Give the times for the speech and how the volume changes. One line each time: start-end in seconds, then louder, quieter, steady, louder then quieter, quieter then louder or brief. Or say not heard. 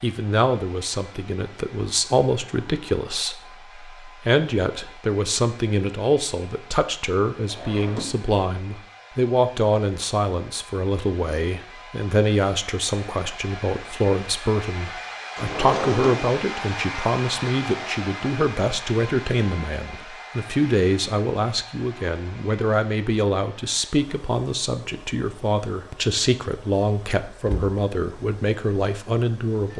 0.0-29.7 steady.